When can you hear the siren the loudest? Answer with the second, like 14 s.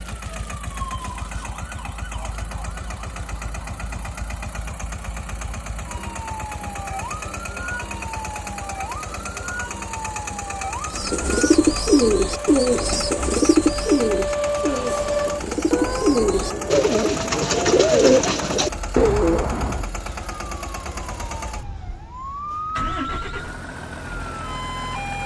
15 s.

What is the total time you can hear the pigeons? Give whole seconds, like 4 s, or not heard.
9 s.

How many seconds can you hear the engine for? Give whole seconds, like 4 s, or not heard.
25 s.